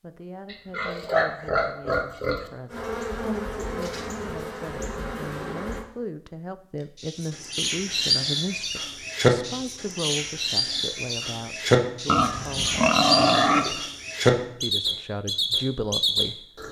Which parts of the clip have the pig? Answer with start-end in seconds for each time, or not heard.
0.5-2.5, 12.1-13.8.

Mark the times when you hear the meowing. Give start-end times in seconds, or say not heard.
not heard.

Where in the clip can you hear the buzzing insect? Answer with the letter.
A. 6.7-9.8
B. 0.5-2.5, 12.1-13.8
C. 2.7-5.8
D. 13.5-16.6
C.